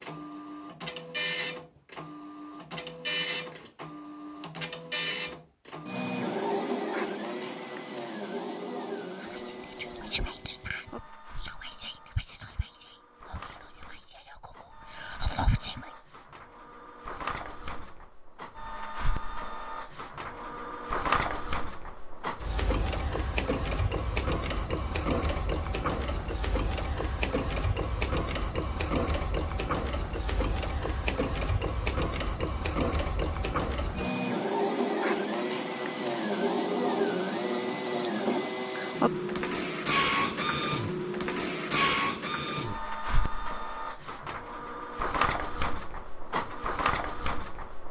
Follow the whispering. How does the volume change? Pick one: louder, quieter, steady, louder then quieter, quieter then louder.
quieter then louder.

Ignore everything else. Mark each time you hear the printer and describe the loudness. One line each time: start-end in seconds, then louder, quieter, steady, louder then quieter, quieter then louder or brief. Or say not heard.
0.0-47.8 quieter then louder.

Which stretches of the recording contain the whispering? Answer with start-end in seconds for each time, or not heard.
9.2-15.9.